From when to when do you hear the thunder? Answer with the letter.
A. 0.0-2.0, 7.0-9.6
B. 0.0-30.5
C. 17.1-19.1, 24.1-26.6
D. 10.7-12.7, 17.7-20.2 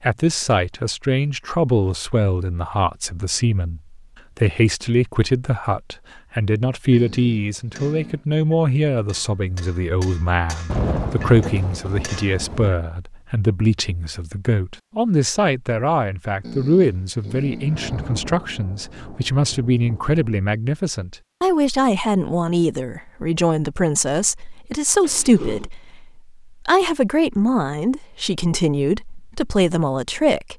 D.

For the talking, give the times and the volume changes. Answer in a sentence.
You can hear the talking from 0.0 to 30.5 s, at a steady volume.